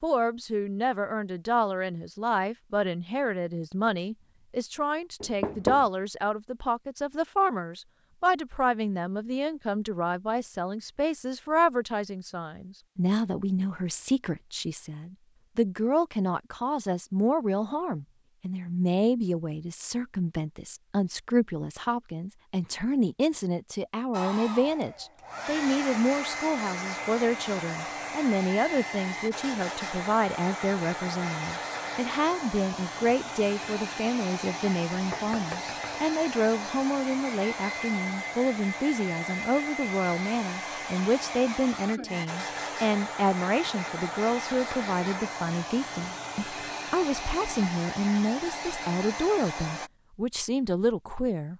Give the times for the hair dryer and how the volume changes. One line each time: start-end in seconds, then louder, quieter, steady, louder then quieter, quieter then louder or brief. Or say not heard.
24.1-49.9 steady.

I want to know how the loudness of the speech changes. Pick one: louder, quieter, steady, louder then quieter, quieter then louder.
steady.